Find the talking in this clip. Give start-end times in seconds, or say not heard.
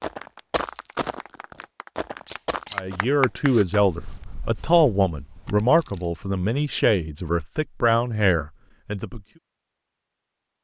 2.8-9.2.